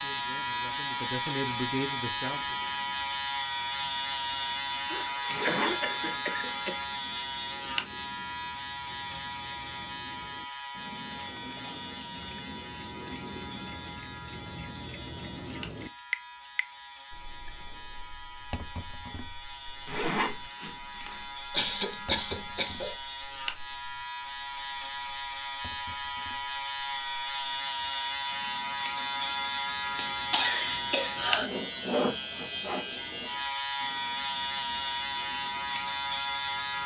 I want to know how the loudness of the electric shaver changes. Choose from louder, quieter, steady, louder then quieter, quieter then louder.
quieter then louder.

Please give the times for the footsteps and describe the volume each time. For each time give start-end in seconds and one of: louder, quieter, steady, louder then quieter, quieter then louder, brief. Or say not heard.
not heard.